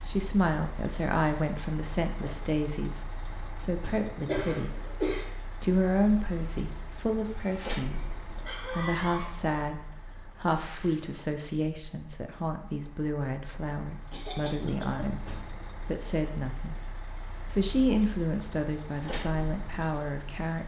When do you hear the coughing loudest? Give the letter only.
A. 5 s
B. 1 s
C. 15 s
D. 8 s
A.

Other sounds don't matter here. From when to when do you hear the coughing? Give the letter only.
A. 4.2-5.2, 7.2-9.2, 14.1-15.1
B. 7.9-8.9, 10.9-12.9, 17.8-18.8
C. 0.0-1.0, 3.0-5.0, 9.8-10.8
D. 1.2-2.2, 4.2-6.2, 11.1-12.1
A.